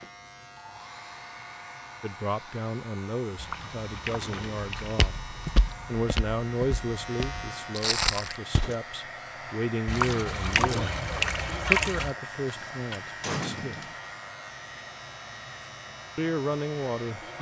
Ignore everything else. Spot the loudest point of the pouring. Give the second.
12 s.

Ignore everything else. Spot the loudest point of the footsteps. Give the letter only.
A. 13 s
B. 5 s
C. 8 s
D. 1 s
C.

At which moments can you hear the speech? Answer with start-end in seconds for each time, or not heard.
2.0-13.8, 16.1-17.3.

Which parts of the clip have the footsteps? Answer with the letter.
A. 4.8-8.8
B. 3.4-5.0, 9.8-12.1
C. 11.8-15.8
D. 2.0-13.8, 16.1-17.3
A.